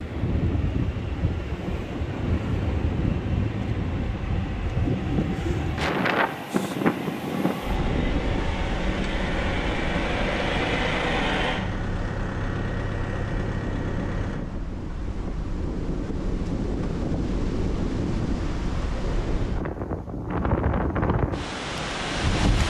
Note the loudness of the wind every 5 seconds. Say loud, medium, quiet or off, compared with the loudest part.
loud, loud, medium, loud, loud.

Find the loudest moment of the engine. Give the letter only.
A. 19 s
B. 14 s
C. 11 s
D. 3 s
C.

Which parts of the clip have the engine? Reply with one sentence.
You can hear the engine from 0.0 to 14.4 s.